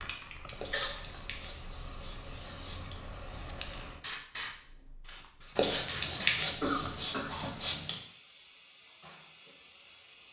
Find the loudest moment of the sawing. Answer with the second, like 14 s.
6 s.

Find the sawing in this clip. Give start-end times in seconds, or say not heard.
0.6-3.1, 5.5-8.0.